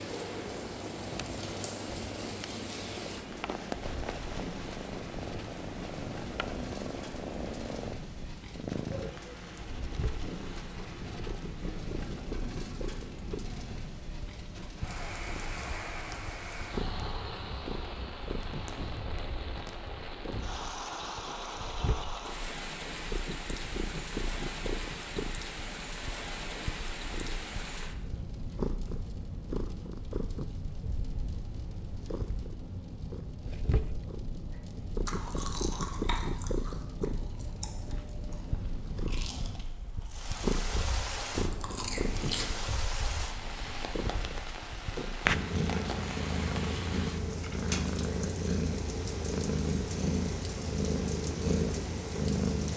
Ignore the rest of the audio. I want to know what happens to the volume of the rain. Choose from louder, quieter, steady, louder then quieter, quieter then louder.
steady.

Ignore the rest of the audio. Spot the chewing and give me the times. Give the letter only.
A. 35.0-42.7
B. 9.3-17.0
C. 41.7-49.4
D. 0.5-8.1
A.